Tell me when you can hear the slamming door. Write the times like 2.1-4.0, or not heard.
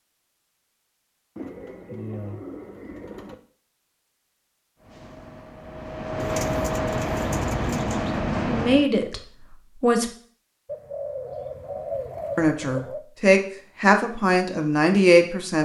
not heard.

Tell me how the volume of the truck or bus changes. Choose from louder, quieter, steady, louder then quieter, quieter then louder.
louder.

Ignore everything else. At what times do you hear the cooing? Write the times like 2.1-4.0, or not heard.
1.4-3.4, 6.2-8.2, 10.7-13.1.